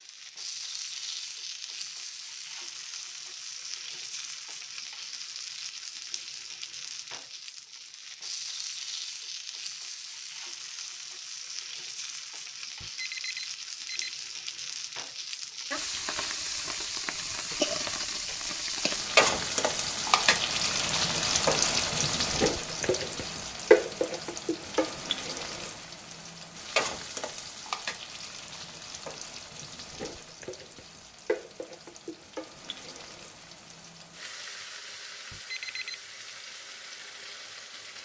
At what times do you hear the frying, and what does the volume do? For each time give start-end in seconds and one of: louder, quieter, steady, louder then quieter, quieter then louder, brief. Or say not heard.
0.0-38.0 louder then quieter.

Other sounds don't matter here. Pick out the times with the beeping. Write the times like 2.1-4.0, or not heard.
12.8-14.1, 35.3-36.0.